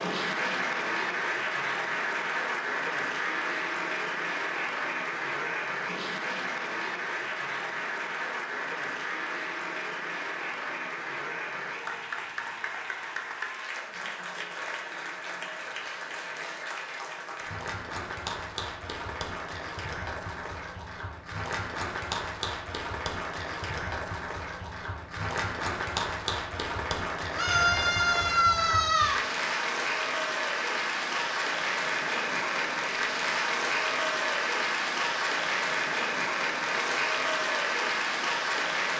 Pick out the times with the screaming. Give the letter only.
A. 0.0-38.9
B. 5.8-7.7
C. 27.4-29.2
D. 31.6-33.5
C.